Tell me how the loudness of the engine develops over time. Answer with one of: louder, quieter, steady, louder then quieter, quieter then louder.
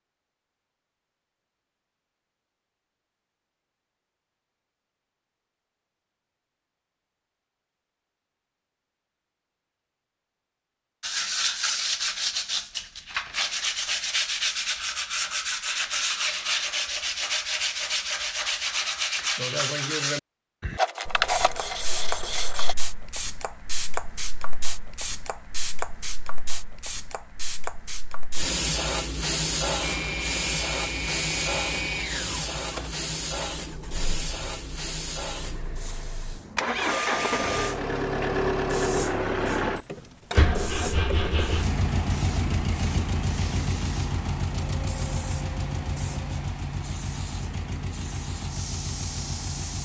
louder then quieter.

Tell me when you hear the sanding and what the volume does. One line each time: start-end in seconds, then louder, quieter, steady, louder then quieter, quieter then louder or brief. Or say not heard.
11.0-22.8 steady.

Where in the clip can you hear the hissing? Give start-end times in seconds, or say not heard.
21.1-49.7.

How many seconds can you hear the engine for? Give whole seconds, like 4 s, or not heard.
20 s.